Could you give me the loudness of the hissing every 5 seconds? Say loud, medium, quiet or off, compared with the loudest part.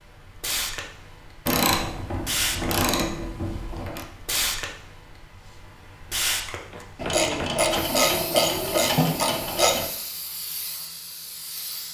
loud, loud, medium.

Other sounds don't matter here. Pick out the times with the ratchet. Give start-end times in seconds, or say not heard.
1.4-4.0, 7.0-9.8.